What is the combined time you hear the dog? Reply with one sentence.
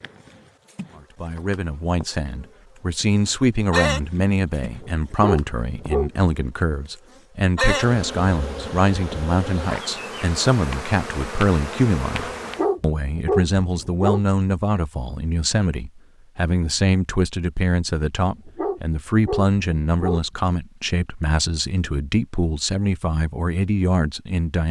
You can hear the dog for 6 seconds altogether.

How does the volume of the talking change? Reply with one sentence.
The loudness of the talking stays about the same.